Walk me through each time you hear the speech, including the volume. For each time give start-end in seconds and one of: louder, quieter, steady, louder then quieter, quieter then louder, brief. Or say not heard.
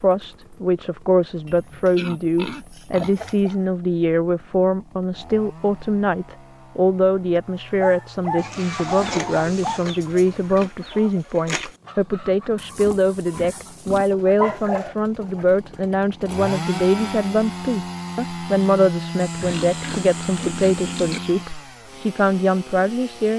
0.0-23.3 steady.